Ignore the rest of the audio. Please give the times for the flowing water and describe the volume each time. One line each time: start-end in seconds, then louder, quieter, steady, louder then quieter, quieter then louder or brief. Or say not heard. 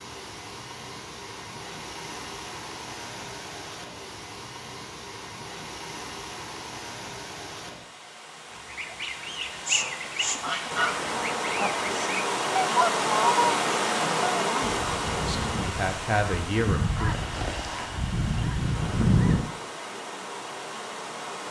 0.0-21.4 louder then quieter.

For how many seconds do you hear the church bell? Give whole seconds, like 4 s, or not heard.
not heard.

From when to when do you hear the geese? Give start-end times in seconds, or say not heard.
8.5-19.4.